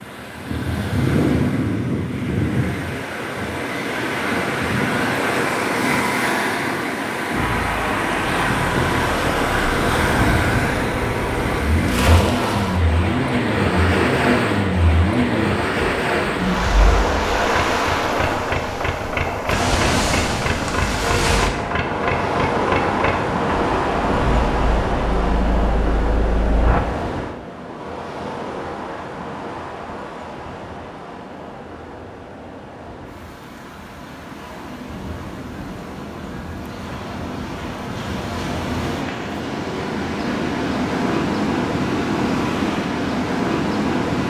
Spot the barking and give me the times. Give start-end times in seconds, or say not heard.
not heard.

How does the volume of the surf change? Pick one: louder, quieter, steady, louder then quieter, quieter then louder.
quieter then louder.